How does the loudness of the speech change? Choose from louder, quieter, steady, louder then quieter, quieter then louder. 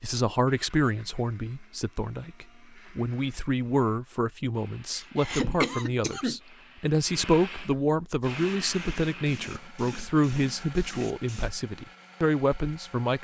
steady.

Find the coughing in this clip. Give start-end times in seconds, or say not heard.
5.0-6.4.